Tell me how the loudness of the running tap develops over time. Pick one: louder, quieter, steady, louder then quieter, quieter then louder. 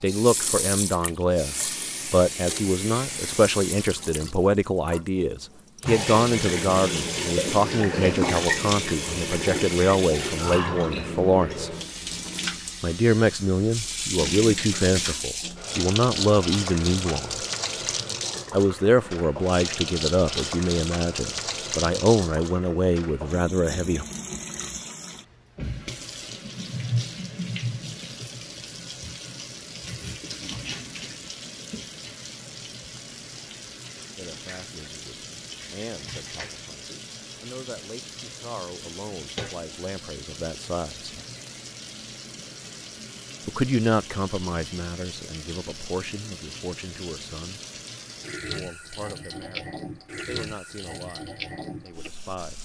quieter.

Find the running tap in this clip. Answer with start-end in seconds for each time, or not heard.
0.0-52.5.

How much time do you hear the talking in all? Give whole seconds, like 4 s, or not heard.
37 s.